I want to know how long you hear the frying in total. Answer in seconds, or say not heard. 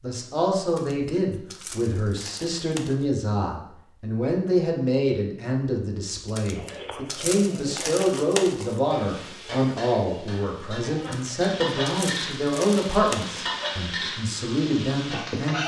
7 s.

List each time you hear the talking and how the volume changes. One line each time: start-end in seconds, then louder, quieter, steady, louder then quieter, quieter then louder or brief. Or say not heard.
0.0-15.6 steady.